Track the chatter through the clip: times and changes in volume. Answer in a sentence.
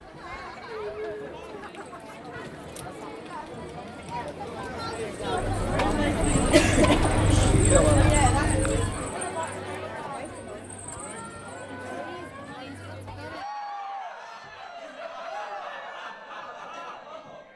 You can hear the chatter from 0.0 to 17.5 s, getting louder then quieter.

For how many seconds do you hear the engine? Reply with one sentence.
The engine can be heard for 4 seconds in total.